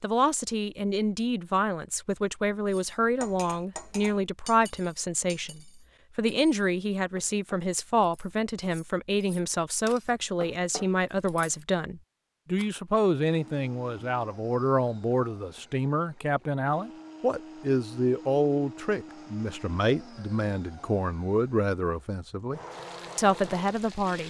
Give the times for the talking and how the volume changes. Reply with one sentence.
The talking can be heard from 0.0 to 24.2 s, at a steady volume.